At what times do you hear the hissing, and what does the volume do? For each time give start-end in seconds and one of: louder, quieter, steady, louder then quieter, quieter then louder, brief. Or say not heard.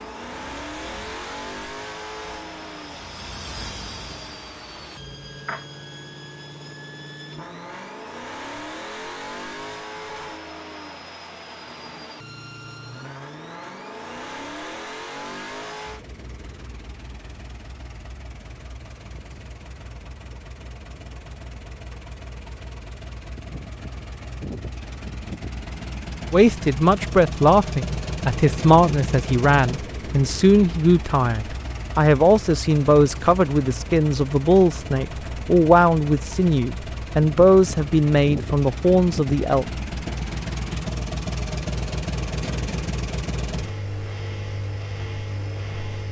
0.0-5.7 louder then quieter.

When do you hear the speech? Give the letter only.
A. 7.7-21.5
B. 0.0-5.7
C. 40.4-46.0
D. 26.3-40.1
D.